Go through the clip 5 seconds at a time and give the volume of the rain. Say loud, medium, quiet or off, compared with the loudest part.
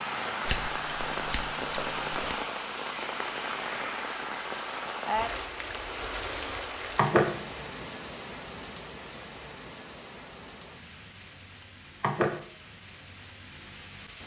loud, loud, quiet.